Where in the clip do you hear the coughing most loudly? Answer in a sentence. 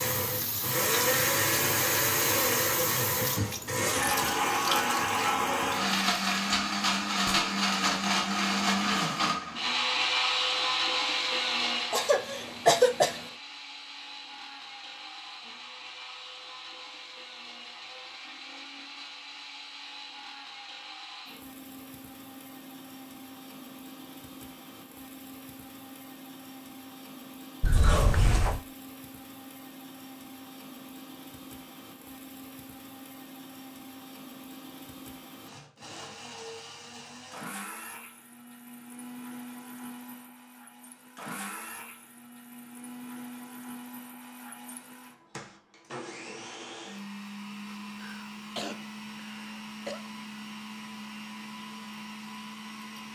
The volume of the coughing peaks at 13 seconds.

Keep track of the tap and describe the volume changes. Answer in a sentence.
The loudness of the tap stays about the same.